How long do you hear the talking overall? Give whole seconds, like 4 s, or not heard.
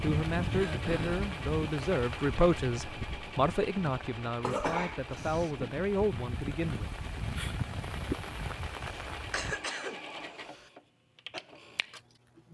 7 s.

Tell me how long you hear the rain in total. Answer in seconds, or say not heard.
10 s.